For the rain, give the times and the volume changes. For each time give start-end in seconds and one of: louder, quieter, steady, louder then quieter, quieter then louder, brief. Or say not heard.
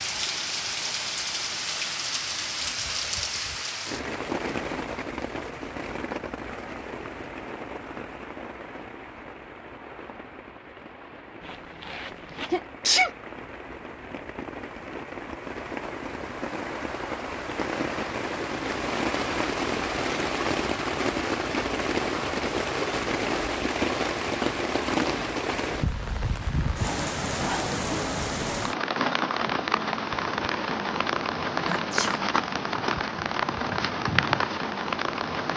0.0-35.5 quieter then louder.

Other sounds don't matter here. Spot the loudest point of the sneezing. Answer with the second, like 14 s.
13 s.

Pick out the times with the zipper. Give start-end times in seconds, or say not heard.
11.4-12.6.